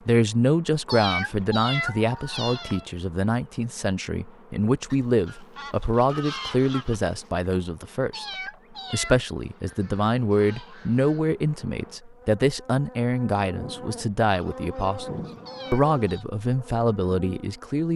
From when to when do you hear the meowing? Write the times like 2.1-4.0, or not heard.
0.8-2.9, 8.1-9.2, 15.4-16.2.